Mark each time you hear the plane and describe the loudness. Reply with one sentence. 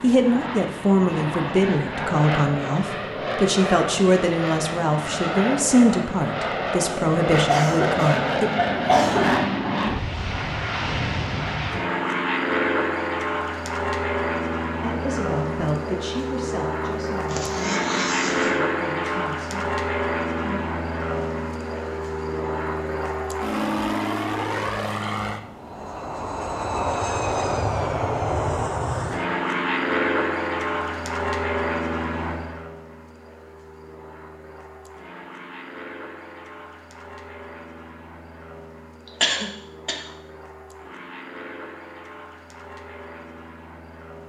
The plane can be heard from 0.0 to 44.2 s, getting quieter.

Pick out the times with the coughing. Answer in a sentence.
You can hear the coughing from 7.5 to 9.3 s, from 17.3 to 18.5 s and from 39.0 to 40.0 s.